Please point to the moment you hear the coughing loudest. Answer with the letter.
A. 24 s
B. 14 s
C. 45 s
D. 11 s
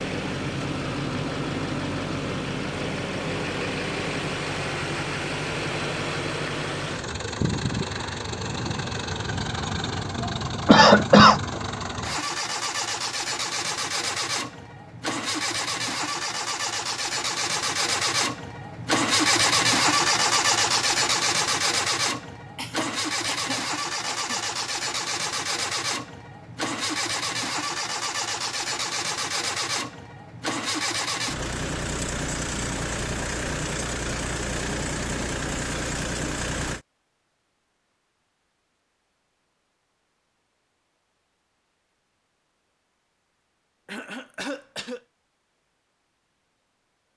D.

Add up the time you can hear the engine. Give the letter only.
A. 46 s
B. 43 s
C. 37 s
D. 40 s
C.